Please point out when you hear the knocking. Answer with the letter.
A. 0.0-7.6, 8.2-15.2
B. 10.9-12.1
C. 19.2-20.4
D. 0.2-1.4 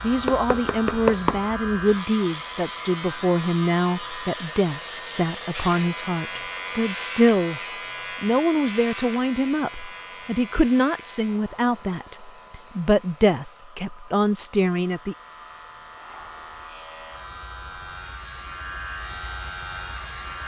D.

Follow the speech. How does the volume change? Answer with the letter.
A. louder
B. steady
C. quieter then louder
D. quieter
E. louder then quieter
B.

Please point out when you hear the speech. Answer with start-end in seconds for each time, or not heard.
0.0-7.6, 8.2-15.2.